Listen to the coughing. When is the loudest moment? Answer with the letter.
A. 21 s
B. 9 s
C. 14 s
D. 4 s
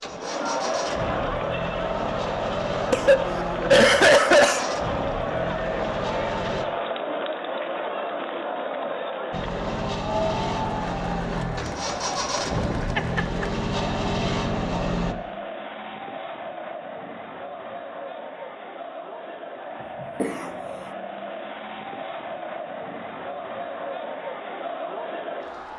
D.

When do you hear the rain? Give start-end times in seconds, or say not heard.
not heard.